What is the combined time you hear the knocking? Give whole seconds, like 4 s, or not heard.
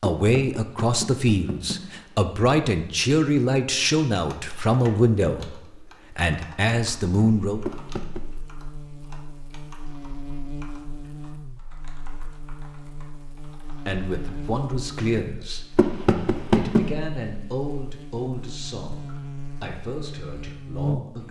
4 s.